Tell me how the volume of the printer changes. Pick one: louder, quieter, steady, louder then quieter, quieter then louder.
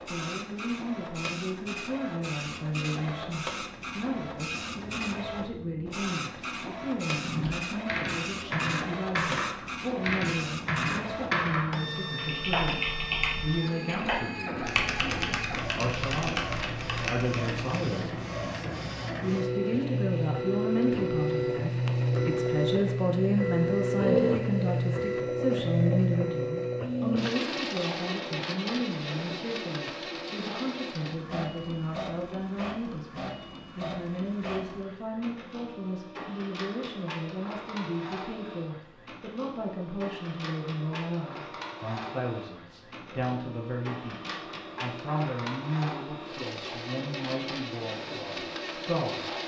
louder then quieter.